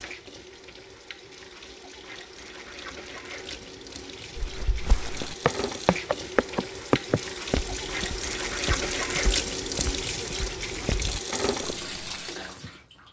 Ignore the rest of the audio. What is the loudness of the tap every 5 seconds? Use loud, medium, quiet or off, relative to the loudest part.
medium, loud, loud.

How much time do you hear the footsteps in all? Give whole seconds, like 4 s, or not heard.
8 s.